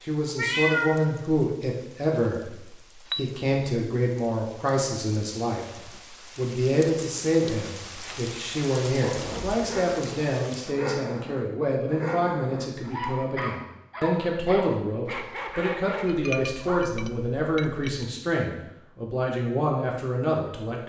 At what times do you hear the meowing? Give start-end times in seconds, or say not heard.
0.3-1.1.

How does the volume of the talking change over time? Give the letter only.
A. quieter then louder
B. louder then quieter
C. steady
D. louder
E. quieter
C.